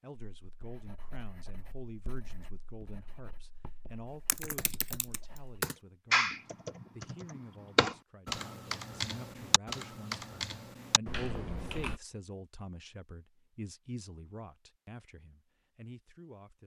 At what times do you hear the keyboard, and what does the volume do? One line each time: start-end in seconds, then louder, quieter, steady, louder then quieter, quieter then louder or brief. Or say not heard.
4.2-12.0 louder then quieter.